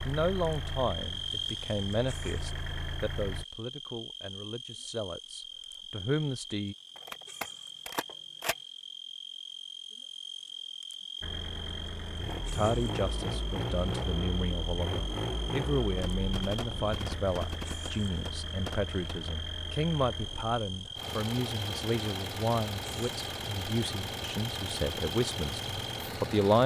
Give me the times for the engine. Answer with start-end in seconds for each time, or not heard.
0.0-3.5, 11.2-26.6.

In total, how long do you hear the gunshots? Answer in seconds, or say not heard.
5 s.